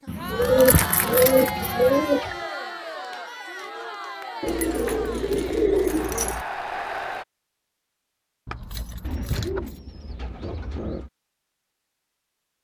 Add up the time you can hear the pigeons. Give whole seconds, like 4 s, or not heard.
6 s.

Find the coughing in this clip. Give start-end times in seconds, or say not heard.
not heard.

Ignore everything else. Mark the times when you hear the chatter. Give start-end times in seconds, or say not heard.
0.0-7.2.